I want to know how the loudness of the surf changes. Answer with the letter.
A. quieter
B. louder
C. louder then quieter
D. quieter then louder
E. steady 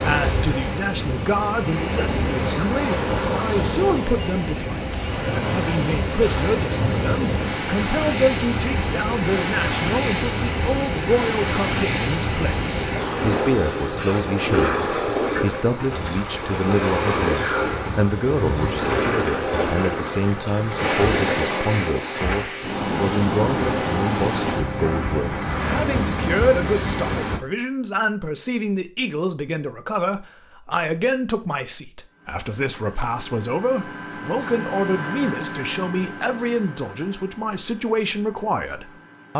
E.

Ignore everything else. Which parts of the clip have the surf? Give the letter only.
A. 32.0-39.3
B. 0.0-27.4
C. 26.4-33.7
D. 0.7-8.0
B.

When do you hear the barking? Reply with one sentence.
You can't hear the barking here.